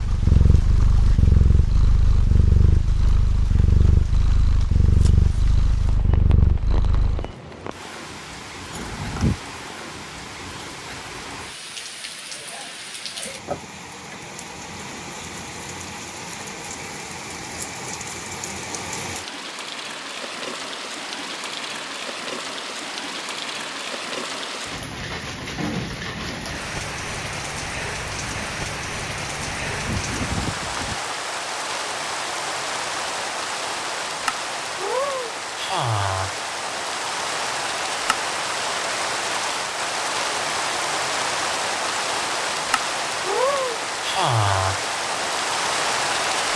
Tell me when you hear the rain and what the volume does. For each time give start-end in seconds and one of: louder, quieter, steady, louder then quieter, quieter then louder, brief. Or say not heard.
0.0-46.5 louder.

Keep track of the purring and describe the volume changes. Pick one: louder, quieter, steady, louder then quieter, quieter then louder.
steady.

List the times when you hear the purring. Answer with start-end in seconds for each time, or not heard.
0.0-7.3.